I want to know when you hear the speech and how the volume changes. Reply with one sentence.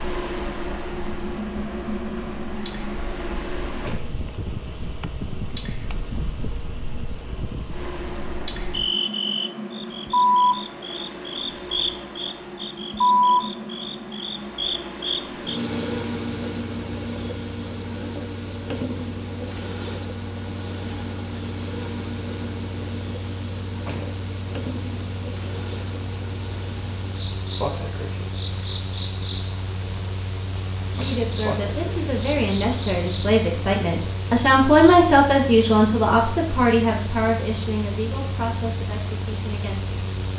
The speech can be heard from 30.9 to 40.0 s, getting louder then quieter.